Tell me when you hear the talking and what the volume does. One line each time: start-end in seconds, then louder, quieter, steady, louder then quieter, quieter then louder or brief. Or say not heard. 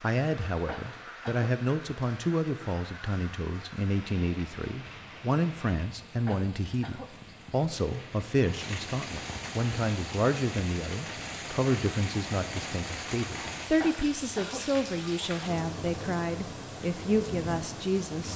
0.0-18.3 steady.